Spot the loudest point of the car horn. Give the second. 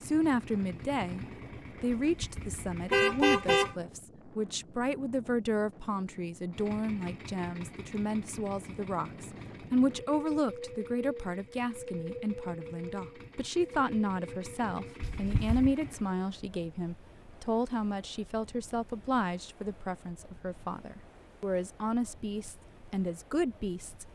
3 s.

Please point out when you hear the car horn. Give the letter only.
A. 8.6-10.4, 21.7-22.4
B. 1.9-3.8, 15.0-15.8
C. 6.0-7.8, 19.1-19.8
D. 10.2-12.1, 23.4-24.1
B.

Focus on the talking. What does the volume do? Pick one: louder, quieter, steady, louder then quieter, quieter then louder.
steady.